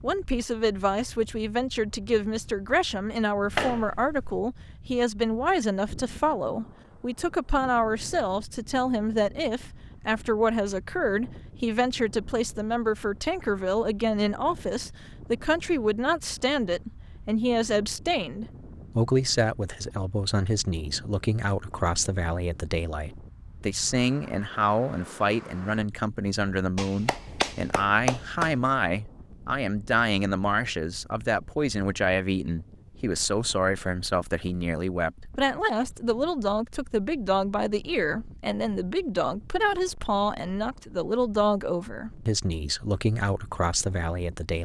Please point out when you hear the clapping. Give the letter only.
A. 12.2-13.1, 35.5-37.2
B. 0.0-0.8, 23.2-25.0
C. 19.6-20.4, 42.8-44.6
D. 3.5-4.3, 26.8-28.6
D.